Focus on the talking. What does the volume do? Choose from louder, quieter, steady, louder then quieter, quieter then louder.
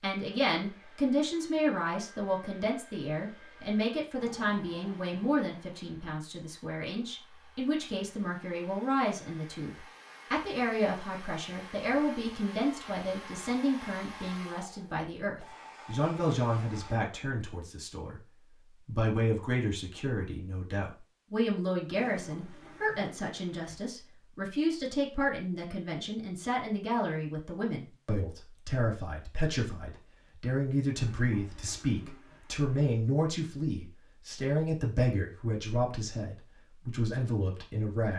steady.